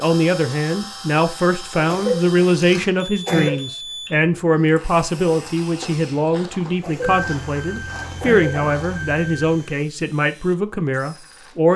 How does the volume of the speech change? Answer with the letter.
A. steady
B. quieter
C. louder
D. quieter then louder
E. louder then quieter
A.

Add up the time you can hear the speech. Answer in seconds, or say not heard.
12 s.